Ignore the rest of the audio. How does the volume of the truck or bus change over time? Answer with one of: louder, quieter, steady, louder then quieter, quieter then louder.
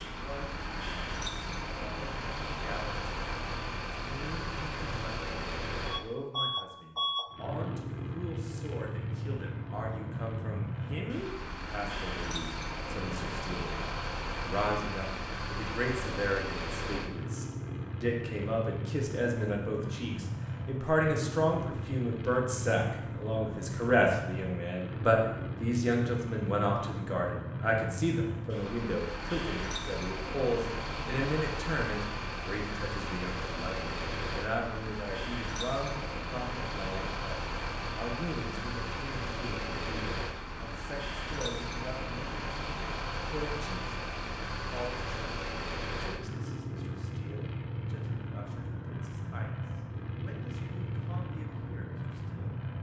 steady.